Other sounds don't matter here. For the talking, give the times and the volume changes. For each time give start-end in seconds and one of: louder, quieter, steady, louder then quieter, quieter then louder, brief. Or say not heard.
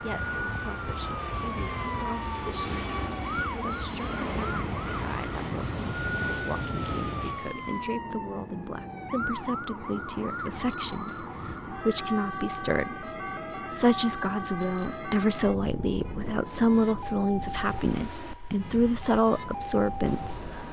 0.0-20.6 louder.